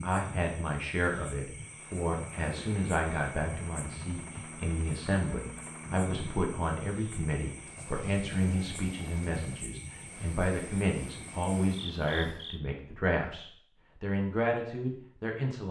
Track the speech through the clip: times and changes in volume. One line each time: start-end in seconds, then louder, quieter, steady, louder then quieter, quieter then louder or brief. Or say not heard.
0.0-15.6 steady.